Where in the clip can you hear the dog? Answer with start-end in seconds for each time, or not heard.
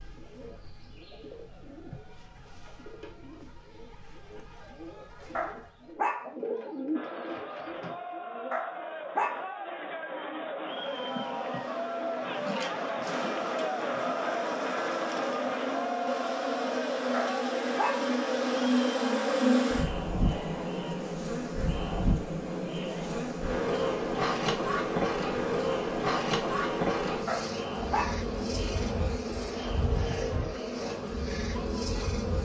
5.3-6.3, 8.5-9.4, 17.1-18.1, 27.2-28.2.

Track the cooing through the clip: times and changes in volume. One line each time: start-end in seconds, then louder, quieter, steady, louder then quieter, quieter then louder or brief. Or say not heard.
0.0-8.7 louder.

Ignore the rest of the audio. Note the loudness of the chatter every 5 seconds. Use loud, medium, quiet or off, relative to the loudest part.
off, medium, loud, loud, medium, medium, medium.